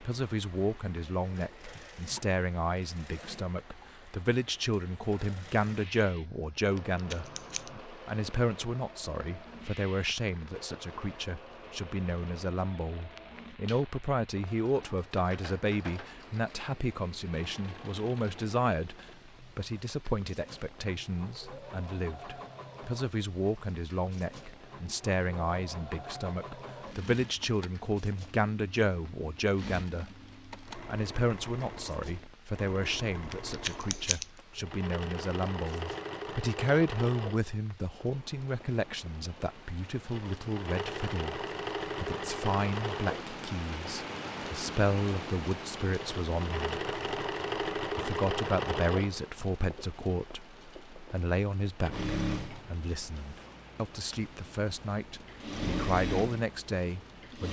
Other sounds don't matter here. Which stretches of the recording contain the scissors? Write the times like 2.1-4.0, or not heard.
6.8-7.7, 33.3-34.2.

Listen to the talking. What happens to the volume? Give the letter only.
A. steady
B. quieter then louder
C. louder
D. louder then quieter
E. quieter
A.